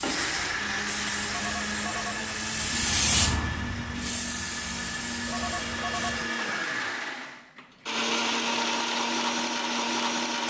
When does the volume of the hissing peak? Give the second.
3 s.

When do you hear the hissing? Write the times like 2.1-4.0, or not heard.
0.0-6.3.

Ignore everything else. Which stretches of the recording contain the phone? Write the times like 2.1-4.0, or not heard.
1.2-2.4, 5.2-6.8.